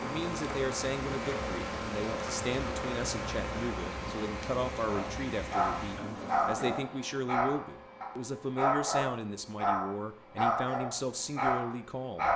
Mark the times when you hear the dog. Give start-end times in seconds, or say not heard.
4.8-12.3.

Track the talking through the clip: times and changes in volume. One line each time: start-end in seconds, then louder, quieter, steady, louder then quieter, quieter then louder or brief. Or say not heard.
0.0-12.3 steady.